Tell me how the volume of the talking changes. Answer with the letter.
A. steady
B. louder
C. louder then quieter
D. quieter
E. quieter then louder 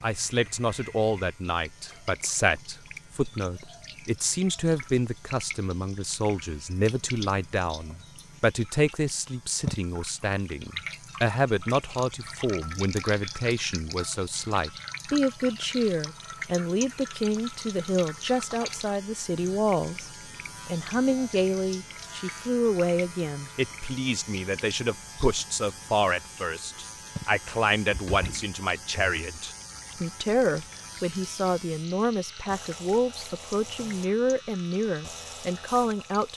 A.